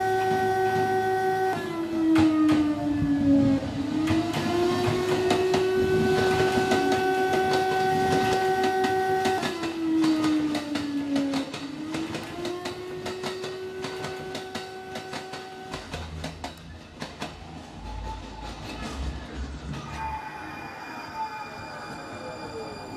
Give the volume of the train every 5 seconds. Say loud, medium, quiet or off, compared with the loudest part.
loud, loud, medium, medium, medium.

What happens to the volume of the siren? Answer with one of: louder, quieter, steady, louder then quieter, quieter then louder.
quieter.